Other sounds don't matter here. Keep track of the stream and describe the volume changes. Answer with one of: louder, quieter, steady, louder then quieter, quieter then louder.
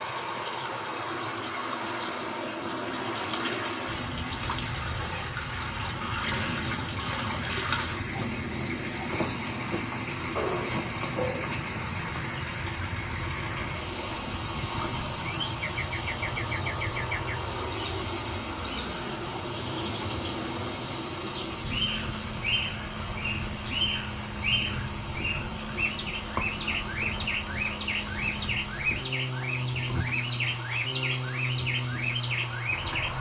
quieter.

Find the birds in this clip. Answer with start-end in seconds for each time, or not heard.
15.2-33.1.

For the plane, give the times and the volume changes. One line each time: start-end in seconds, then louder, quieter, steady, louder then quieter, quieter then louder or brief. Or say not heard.
0.0-33.1 steady.